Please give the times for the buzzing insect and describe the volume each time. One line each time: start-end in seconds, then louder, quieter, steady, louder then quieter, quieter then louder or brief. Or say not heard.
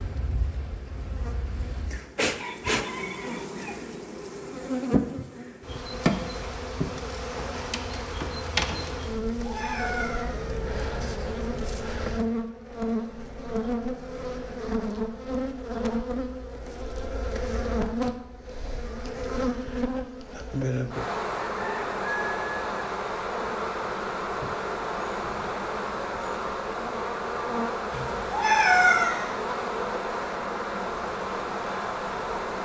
0.0-32.5 steady.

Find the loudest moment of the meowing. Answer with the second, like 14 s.
29 s.